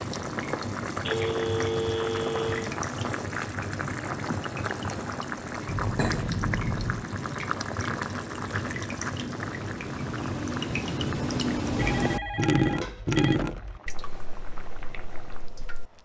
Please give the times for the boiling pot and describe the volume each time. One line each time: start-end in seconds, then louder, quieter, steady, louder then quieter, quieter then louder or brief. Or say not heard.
0.0-16.0 quieter.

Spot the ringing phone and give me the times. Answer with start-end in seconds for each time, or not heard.
1.1-2.8, 5.7-7.1, 11.8-13.8.